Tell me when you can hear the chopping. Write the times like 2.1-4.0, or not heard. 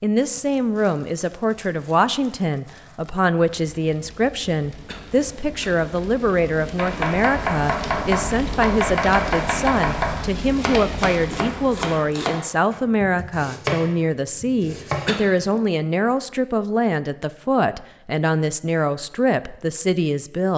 6.8-15.7.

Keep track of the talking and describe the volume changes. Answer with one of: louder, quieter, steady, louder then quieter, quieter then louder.
steady.